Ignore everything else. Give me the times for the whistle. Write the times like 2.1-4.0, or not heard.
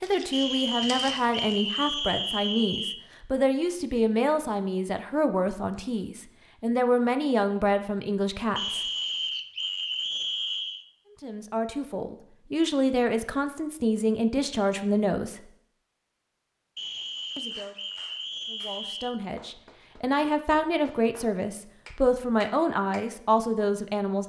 0.3-3.0, 8.6-10.8, 16.8-19.2.